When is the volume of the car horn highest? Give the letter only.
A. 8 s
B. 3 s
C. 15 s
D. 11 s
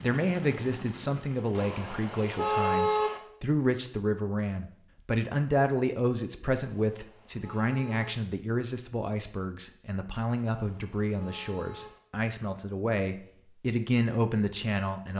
B.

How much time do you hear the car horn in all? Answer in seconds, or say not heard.
5 s.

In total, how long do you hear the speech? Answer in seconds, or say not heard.
15 s.